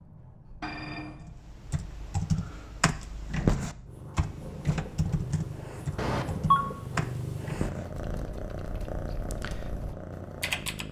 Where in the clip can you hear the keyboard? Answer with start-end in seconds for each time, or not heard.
1.2-10.8.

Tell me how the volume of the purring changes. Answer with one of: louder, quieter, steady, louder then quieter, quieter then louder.
louder.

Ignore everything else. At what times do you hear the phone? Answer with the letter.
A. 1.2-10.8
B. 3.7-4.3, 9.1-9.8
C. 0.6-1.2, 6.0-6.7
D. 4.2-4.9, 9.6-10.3
C.